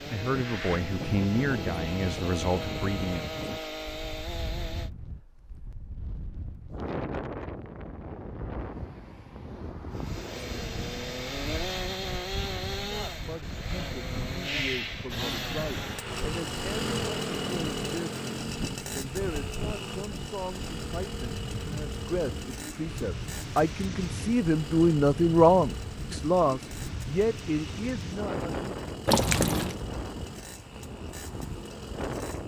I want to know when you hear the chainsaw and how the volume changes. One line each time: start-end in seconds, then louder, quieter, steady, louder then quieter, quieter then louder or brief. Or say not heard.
0.0-4.9 steady
9.9-32.4 quieter.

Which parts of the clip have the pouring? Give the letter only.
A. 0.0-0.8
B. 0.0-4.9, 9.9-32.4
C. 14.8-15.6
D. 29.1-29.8
D.